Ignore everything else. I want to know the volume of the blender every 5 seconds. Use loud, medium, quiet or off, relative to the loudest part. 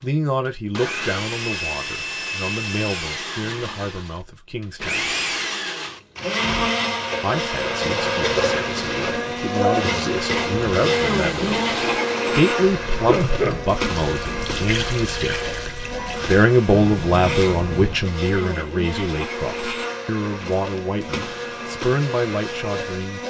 medium, loud, loud, medium, medium.